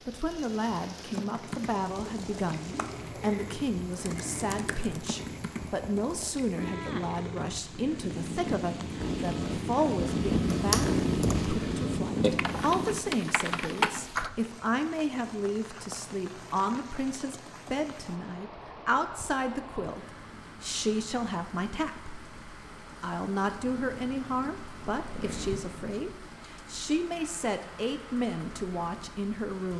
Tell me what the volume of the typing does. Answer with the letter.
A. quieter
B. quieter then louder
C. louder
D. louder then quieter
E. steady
C.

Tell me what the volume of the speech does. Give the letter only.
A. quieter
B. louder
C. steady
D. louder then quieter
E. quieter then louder
C.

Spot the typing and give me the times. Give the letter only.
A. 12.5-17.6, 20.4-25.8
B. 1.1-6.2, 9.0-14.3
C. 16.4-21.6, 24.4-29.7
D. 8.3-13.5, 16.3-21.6
B.